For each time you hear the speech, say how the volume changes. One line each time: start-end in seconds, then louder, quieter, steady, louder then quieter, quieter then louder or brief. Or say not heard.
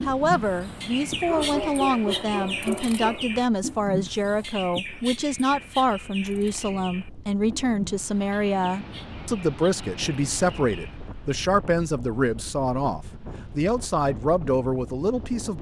0.0-15.5 steady.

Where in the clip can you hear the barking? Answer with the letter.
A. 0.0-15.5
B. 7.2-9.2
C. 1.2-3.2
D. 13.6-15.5
C.